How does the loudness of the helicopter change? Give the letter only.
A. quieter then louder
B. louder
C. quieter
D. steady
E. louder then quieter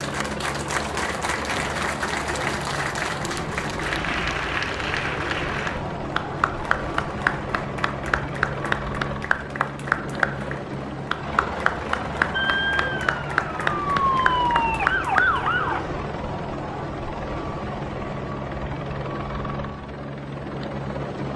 D.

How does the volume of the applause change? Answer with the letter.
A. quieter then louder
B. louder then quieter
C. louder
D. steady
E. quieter
D.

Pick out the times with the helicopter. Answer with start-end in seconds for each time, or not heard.
0.0-21.3.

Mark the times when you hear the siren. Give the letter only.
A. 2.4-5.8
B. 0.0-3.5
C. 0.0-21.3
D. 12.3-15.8
D.